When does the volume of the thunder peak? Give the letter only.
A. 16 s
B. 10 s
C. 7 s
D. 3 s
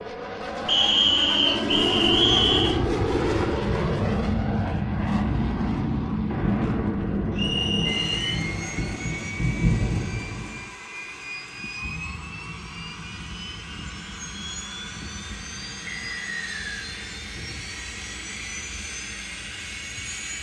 B.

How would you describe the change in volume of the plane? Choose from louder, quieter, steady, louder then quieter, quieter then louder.
quieter.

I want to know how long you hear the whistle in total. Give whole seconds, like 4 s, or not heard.
4 s.